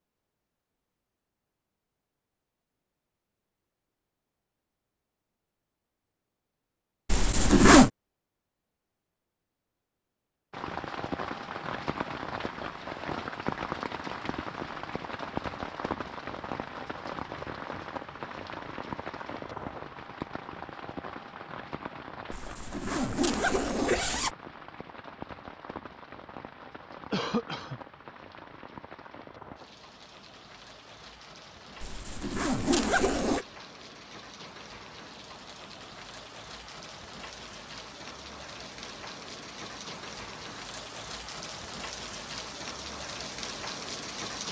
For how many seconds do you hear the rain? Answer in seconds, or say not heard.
34 s.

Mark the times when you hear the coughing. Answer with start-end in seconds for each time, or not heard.
27.1-27.8.